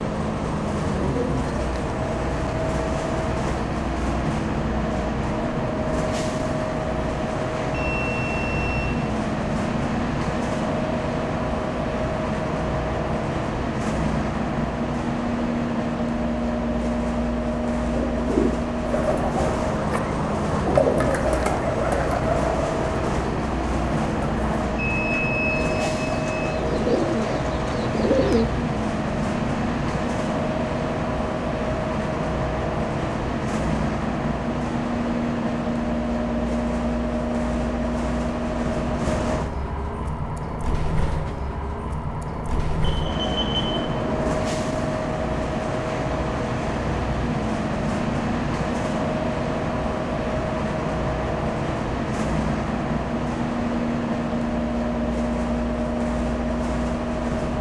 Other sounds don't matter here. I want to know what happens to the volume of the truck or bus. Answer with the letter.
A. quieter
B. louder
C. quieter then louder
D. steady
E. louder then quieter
D.